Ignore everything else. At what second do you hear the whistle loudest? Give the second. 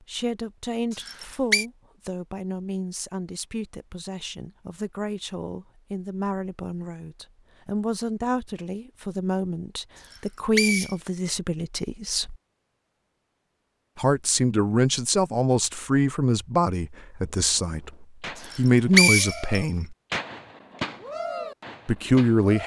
19 s.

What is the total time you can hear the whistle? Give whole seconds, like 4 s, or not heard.
3 s.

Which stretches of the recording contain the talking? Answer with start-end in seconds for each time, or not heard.
0.1-12.3, 13.9-19.9, 21.9-22.6.